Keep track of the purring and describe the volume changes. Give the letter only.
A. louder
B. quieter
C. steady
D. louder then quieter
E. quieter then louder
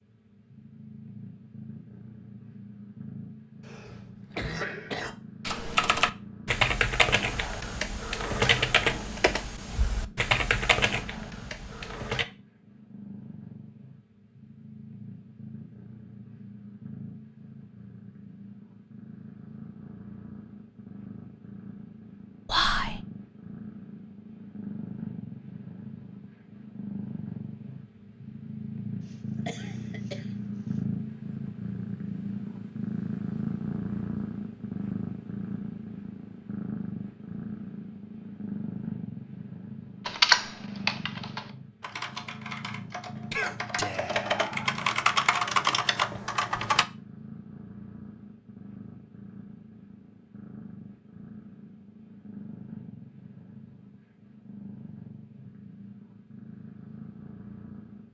D.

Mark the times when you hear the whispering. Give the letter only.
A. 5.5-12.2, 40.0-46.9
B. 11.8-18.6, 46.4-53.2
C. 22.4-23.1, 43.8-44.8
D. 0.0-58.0
C.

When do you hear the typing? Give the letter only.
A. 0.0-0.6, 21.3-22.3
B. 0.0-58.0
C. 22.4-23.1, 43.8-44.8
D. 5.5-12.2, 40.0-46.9
D.